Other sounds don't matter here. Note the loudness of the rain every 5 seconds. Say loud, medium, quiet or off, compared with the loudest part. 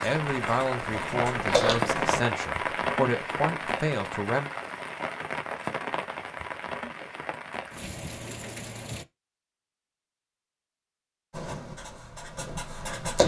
loud, medium, off.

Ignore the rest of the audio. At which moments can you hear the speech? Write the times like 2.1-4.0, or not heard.
0.0-4.5.